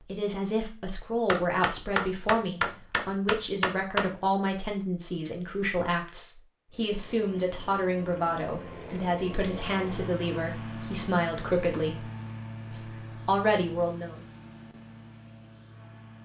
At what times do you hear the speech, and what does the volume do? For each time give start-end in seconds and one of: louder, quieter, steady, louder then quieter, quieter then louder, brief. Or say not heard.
0.0-12.1 steady
12.7-14.2 brief.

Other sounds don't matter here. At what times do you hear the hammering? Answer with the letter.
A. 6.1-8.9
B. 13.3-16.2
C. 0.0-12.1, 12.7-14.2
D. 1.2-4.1
D.